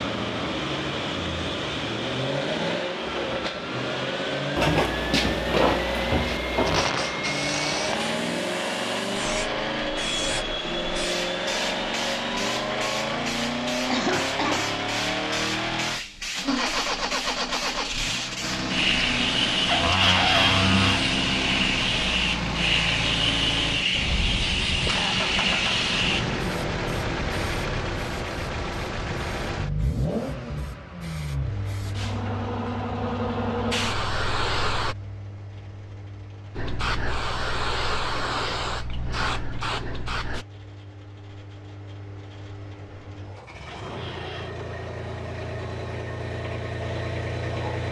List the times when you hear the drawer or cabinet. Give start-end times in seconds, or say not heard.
4.5-6.9, 19.6-21.1, 43.6-44.5.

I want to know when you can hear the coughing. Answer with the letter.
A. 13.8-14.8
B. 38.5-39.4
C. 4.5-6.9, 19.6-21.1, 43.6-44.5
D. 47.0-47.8
A.